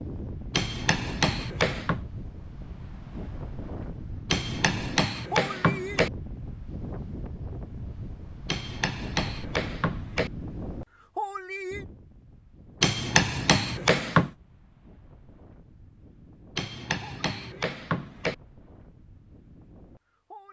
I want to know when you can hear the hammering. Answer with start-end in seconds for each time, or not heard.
0.5-2.0, 4.2-6.1, 8.4-10.3, 12.8-14.3, 16.6-18.4.